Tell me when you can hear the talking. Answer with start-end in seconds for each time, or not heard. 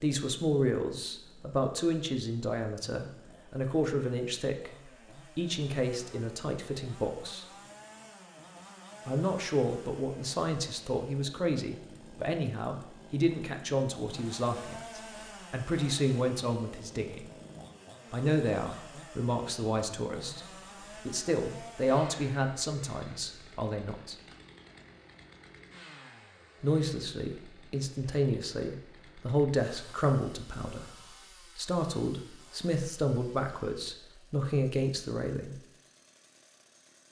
0.0-7.5, 9.1-17.2, 18.1-24.1, 26.6-30.9, 31.6-35.6.